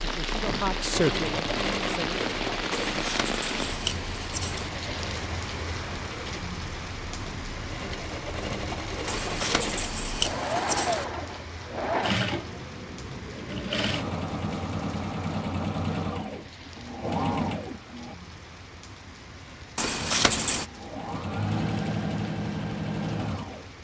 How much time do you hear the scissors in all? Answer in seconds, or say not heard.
5 s.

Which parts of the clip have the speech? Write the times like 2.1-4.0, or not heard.
0.0-2.2.